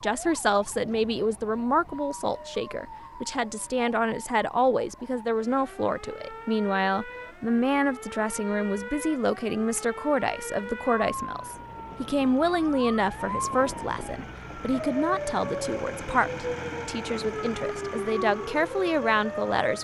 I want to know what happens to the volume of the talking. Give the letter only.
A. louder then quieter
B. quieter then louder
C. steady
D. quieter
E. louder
C.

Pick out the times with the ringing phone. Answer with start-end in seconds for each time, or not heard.
not heard.